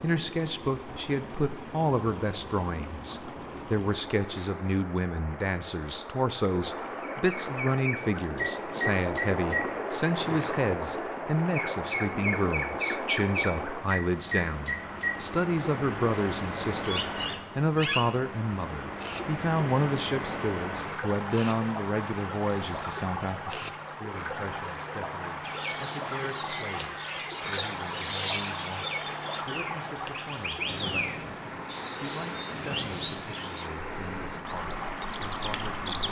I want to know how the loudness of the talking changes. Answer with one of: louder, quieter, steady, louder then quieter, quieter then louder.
quieter.